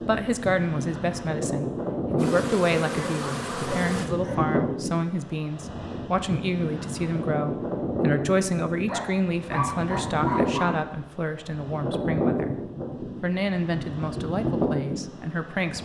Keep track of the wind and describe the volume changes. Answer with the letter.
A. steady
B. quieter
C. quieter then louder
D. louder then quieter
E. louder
A.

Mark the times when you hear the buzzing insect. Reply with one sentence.
The buzzing insect can be heard from 2.1 to 4.1 s.